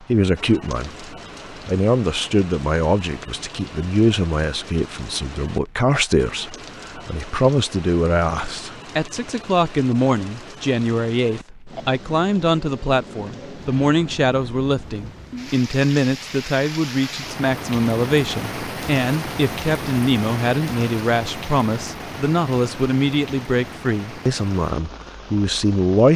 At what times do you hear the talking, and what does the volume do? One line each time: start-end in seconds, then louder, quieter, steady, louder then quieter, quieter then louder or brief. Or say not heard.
0.0-26.1 steady.